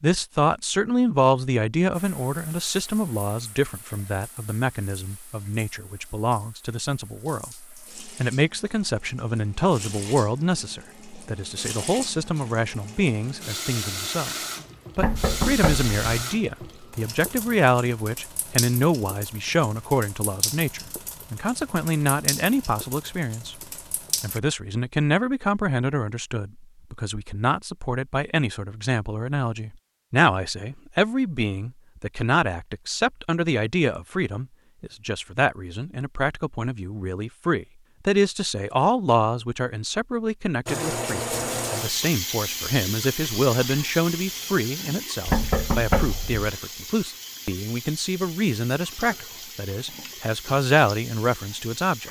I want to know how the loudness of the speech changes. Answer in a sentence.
The volume of the speech stays about the same.